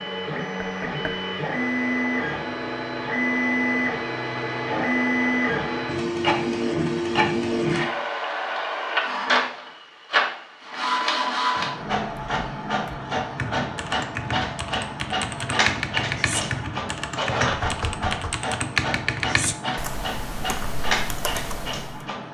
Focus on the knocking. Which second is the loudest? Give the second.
18 s.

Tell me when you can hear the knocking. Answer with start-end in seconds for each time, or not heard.
0.6-1.1, 17.6-18.4.